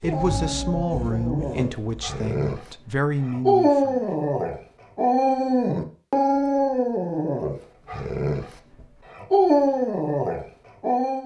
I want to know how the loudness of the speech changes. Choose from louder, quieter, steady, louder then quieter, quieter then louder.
quieter then louder.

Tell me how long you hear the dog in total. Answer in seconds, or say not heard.
11 s.